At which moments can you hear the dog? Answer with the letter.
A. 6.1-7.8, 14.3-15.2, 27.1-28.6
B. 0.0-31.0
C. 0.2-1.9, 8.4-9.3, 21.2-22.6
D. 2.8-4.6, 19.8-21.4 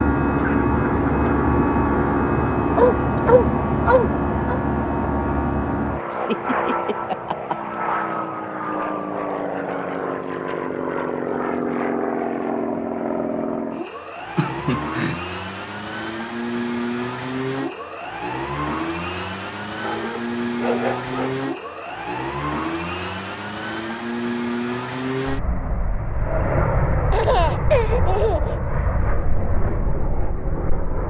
D.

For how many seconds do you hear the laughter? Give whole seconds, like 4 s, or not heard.
4 s.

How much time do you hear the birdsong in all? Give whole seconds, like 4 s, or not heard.
not heard.